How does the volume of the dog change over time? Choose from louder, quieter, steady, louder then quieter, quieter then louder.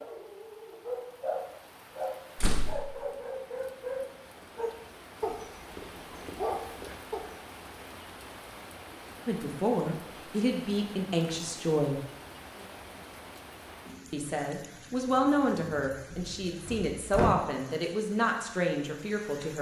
steady.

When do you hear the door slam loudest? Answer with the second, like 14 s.
17 s.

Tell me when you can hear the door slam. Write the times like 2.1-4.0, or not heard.
2.4-2.8, 16.1-17.3.